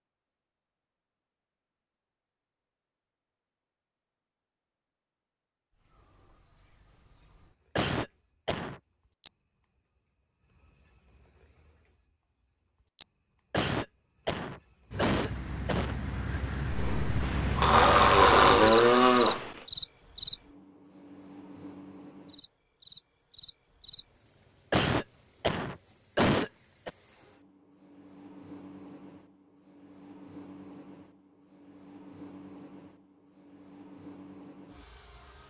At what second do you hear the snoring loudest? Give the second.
18 s.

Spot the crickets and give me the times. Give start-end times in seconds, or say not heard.
5.8-35.4.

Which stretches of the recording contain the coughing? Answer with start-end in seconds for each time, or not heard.
7.8-8.8, 13.5-16.0, 24.7-26.9.